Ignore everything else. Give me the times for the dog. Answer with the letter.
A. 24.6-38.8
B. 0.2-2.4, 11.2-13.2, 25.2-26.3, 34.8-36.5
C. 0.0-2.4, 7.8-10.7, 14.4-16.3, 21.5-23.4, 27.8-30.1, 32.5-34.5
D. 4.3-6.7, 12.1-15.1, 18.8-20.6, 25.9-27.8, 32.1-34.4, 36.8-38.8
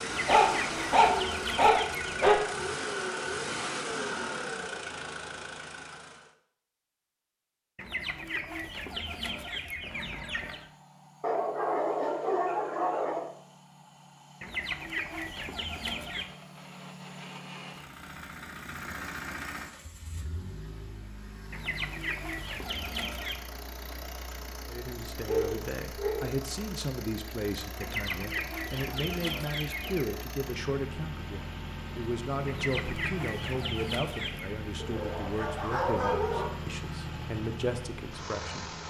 B.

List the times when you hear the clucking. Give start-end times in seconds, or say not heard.
0.0-2.4, 7.8-10.7, 14.4-16.3, 21.5-23.4, 27.8-30.1, 32.5-34.5.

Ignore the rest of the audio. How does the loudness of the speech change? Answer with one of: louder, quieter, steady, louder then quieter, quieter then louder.
steady.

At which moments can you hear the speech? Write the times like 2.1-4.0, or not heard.
24.6-38.8.